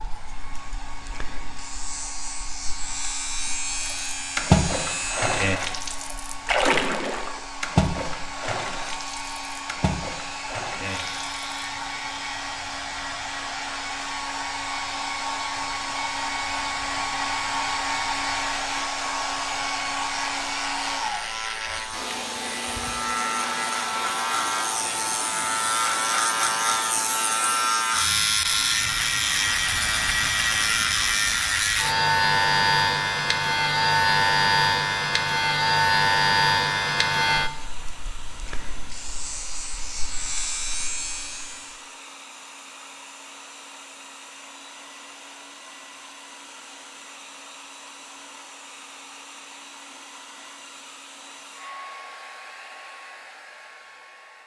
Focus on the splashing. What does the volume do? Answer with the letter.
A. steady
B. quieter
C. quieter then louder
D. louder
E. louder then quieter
B.